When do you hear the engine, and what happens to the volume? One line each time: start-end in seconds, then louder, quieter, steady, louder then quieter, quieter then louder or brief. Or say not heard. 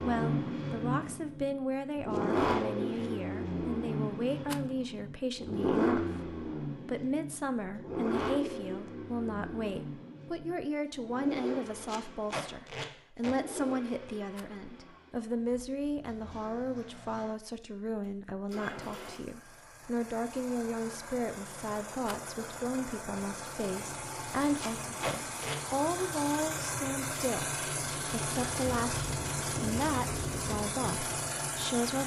0.0-32.0 quieter then louder.